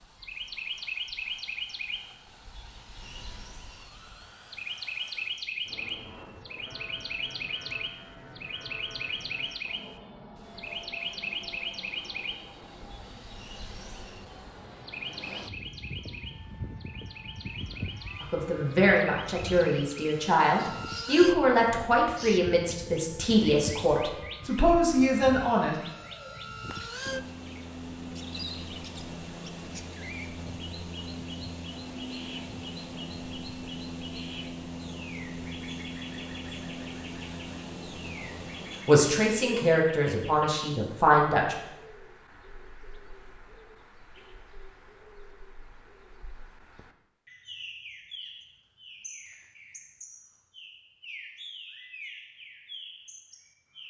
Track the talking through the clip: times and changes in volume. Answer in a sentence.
The talking can be heard from 18.2 to 25.8 s, at a steady volume; and briefly from 38.9 to 41.5 s.